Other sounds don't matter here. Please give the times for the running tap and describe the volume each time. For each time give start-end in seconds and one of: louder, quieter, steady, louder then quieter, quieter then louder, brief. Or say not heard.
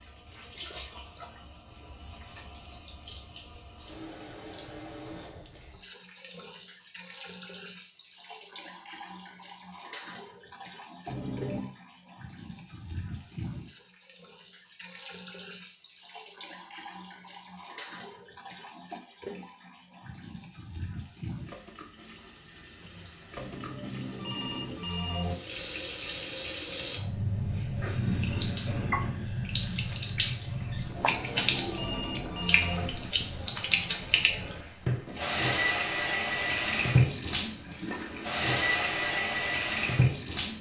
0.0-40.5 louder.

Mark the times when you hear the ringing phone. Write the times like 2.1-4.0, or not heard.
11.1-11.7, 23.4-25.4, 30.9-32.9.